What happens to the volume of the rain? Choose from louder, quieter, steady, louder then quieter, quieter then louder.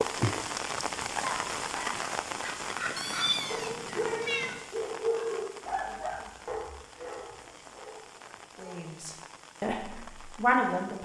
quieter.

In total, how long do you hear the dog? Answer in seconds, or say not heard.
8 s.